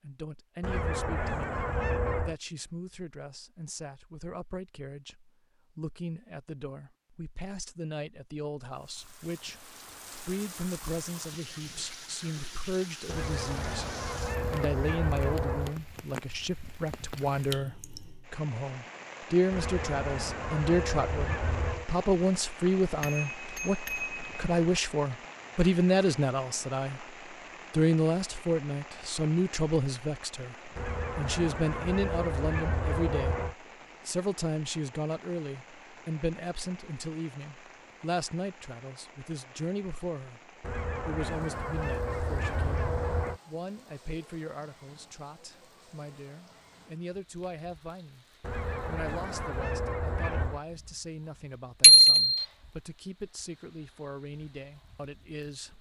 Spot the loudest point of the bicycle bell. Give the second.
52 s.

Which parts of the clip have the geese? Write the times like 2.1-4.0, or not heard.
0.6-2.4, 13.1-15.8, 19.5-21.9, 30.8-33.5, 40.6-43.4, 48.4-50.6.